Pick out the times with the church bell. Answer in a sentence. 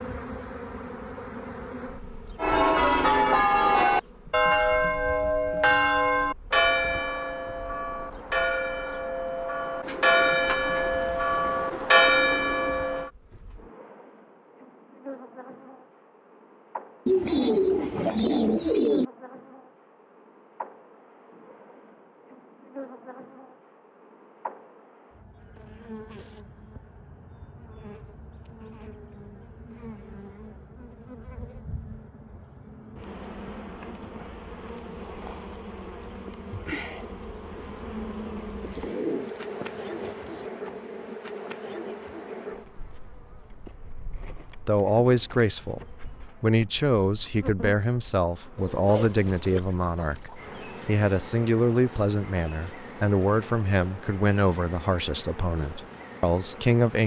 The church bell can be heard from 2.4 to 13.1 s.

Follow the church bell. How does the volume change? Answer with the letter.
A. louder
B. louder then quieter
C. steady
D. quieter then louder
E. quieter
D.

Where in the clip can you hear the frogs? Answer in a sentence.
The frogs can't be heard in this clip.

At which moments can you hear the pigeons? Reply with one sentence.
You can hear the pigeons from 9.8 to 12.8 s, from 17.1 to 19.1 s, from 38.6 to 40.5 s and from 48.5 to 50.4 s.